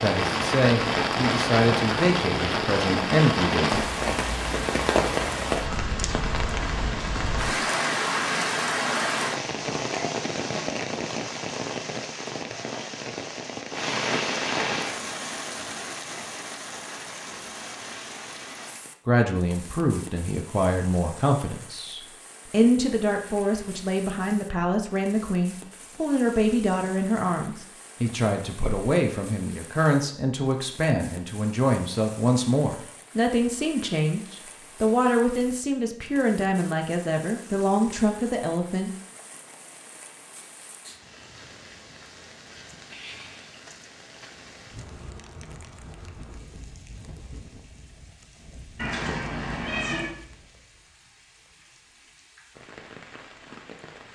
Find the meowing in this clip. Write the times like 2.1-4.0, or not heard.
48.8-50.1.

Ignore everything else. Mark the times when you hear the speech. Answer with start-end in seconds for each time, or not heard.
0.0-3.9, 19.1-38.9.